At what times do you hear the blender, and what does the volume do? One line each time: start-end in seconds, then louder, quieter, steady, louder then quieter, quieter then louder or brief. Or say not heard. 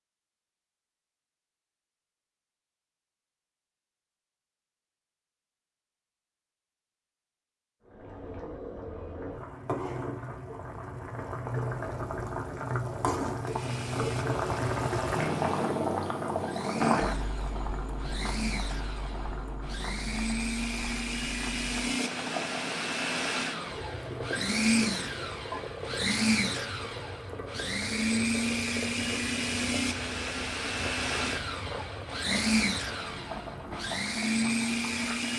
13.4-35.3 louder.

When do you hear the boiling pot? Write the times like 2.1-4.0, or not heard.
7.8-35.3.